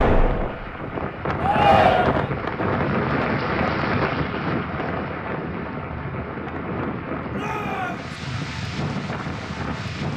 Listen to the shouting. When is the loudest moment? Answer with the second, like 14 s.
2 s.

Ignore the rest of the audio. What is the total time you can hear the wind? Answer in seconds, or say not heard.
10 s.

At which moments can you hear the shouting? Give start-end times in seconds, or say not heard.
1.4-2.3, 7.3-8.2.